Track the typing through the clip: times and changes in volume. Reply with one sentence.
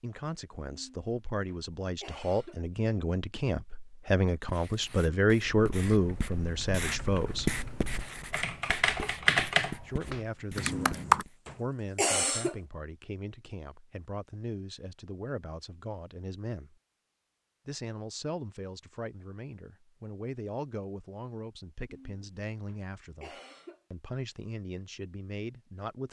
The typing can be heard from 5.5 to 11.2 s, getting louder then quieter.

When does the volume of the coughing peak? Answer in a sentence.
The volume of the coughing peaks at 12 seconds.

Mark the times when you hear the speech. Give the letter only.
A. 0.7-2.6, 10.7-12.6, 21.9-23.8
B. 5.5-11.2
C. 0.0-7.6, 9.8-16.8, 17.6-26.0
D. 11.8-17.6
C.